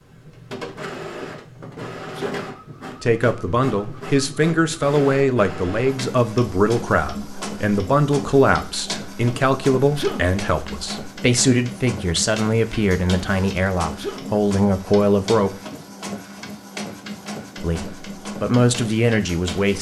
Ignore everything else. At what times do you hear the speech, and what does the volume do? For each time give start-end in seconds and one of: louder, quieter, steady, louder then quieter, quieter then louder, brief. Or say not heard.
3.0-15.6 steady
17.6-19.7 brief.